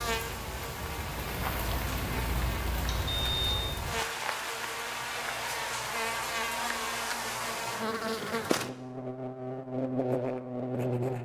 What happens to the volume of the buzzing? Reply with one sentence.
The loudness of the buzzing goes up.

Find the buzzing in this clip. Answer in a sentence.
The buzzing can be heard from 0.0 to 11.2 s.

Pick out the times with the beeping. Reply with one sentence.
You can hear the beeping from 2.9 to 3.6 s.